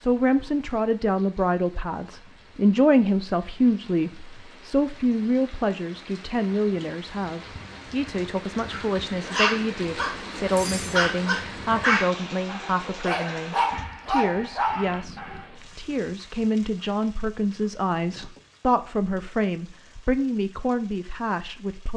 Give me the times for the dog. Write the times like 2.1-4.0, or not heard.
8.7-15.4.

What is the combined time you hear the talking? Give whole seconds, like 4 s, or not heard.
22 s.